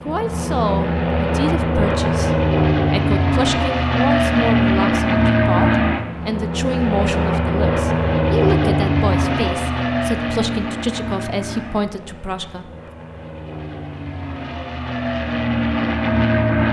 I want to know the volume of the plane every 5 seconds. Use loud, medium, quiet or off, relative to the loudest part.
loud, loud, medium, loud.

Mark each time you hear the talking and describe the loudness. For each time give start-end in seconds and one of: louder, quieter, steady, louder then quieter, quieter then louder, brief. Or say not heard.
0.0-12.9 steady.